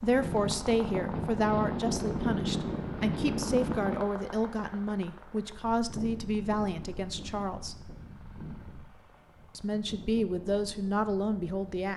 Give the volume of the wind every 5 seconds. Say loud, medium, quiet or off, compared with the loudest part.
loud, quiet, quiet.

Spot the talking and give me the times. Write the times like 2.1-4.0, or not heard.
0.0-7.8, 9.6-11.9.